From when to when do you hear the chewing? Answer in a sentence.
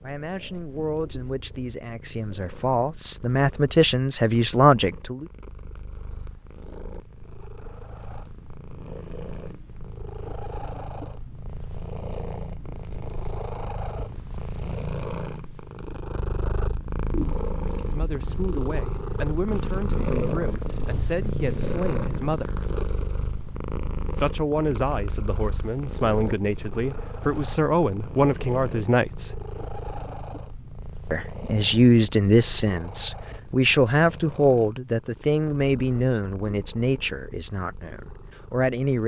The chewing can't be heard in this clip.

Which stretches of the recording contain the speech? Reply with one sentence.
The speech can be heard from 0.0 to 5.2 s, from 17.7 to 22.6 s, from 24.1 to 29.4 s and from 31.1 to 39.0 s.